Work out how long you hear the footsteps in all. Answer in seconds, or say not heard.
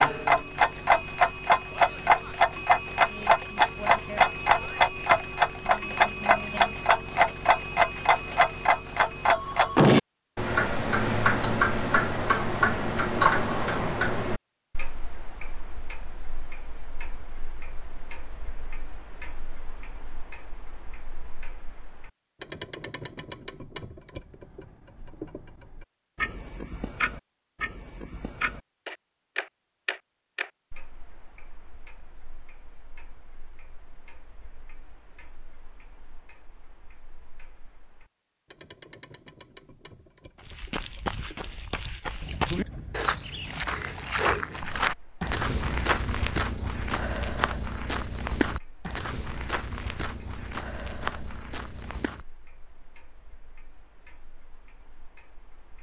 12 s.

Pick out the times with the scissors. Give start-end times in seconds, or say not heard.
not heard.